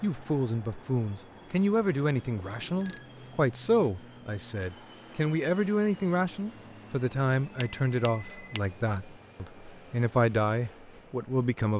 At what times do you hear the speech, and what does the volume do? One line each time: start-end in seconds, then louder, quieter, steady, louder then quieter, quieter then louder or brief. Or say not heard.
0.0-11.7 steady.